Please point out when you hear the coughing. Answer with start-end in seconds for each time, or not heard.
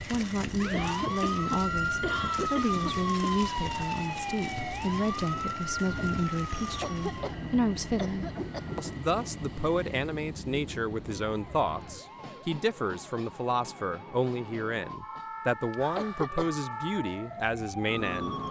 0.7-3.4, 6.8-8.7, 15.9-16.6.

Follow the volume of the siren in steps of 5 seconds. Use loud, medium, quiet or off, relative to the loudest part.
loud, medium, quiet, medium.